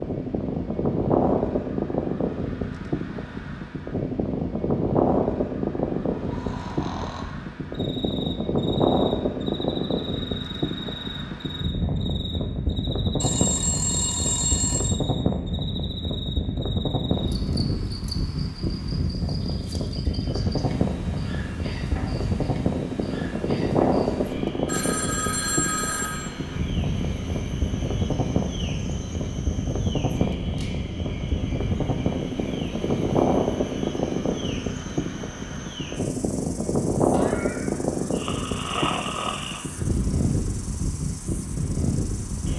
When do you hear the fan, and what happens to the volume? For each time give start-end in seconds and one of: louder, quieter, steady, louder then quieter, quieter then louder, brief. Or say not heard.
0.0-42.5 steady.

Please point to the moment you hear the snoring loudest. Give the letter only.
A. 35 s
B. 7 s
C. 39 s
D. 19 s
C.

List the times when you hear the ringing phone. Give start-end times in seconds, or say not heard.
13.2-14.9, 24.6-26.3.